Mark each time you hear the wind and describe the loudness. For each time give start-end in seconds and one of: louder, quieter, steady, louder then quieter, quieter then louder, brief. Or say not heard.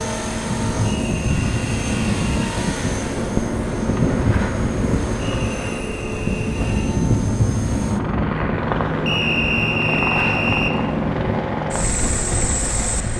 0.0-13.1 steady.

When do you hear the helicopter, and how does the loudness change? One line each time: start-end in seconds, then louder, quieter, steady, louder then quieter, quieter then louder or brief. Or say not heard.
0.0-13.1 steady.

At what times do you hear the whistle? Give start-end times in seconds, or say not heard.
0.8-2.5, 5.2-6.9, 9.1-10.8.